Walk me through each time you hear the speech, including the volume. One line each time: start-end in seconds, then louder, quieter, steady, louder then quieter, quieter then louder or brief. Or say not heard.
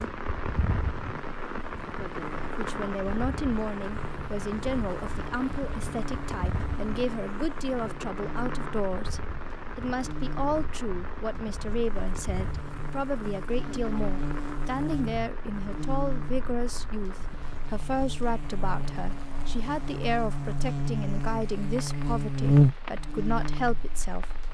2.5-24.3 steady.